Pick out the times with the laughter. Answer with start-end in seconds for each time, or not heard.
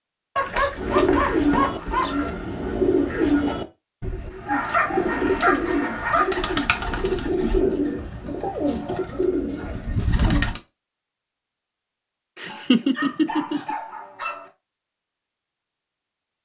12.3-13.8.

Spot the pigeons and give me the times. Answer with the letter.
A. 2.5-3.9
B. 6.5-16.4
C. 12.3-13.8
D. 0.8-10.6
D.